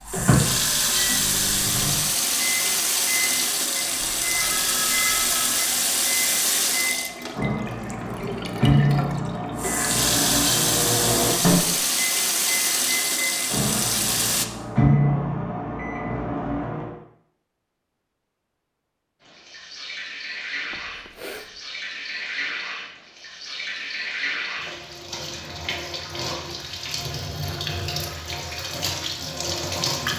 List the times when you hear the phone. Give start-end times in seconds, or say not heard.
4.0-5.7, 20.7-21.8.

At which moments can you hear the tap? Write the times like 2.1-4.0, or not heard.
0.1-14.4, 19.2-30.1.